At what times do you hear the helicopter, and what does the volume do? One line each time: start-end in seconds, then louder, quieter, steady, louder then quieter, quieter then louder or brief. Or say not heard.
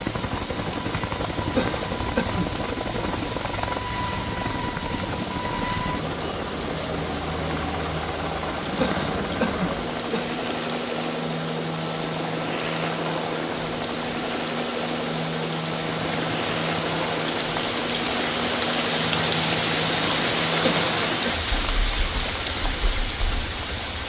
0.0-24.0 steady.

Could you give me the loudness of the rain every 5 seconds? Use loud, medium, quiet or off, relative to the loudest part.
medium, medium, medium, loud, loud.